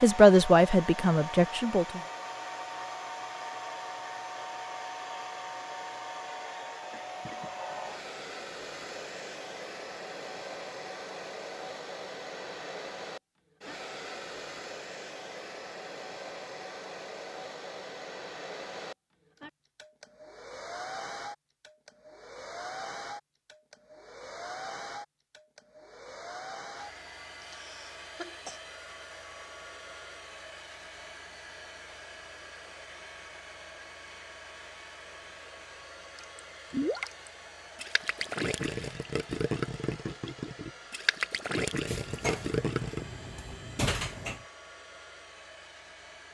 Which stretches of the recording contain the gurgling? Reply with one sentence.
The gurgling can be heard from 36.1 to 43.0 s.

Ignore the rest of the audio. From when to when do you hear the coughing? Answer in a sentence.
The coughing can be heard from 27.4 to 28.6 s.